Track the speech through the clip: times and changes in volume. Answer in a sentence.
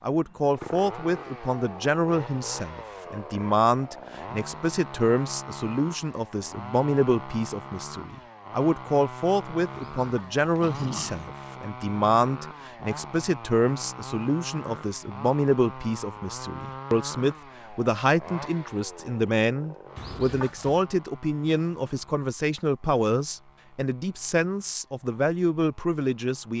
You can hear the speech from 0.0 to 26.5 s, at a steady volume.